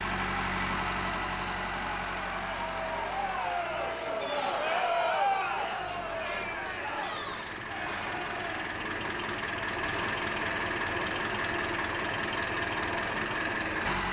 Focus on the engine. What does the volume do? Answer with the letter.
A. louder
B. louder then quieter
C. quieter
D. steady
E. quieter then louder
E.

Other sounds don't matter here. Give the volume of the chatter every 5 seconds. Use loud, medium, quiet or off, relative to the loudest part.
loud, loud, off.